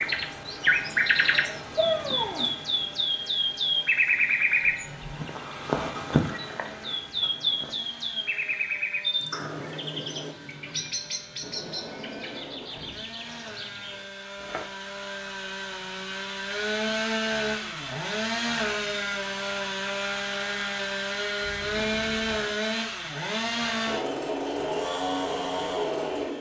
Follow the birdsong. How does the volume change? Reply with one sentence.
The volume of the birdsong goes down.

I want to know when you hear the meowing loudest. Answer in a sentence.
The loudest moment of the meowing is at 2 seconds.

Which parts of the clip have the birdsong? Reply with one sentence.
You can hear the birdsong from 0.0 to 14.7 s.